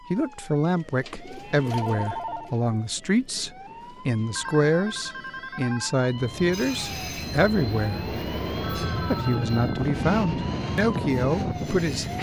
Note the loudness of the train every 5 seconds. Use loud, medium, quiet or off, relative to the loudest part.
off, loud, loud.